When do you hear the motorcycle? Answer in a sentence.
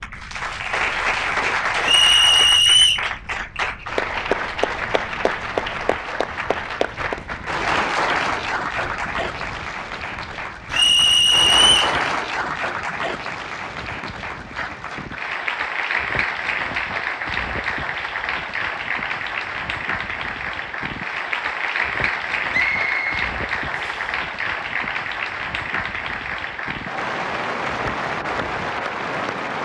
You can't hear the motorcycle here.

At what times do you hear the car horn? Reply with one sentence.
The car horn can't be heard in this clip.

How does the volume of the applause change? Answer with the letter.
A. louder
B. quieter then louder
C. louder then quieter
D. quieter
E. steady
E.